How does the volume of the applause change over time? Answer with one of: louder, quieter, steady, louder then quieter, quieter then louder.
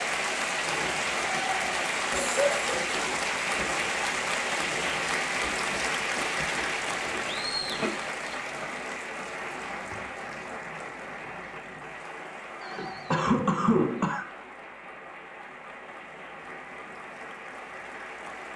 quieter.